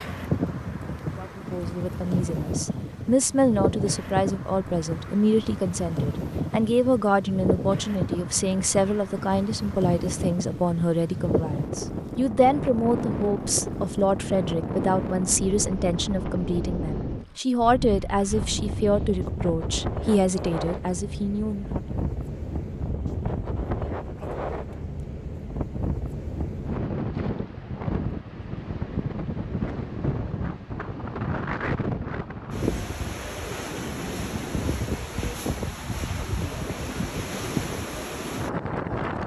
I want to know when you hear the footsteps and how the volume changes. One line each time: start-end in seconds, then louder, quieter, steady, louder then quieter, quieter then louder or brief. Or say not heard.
not heard.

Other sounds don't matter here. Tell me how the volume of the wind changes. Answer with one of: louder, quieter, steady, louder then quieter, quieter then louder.
steady.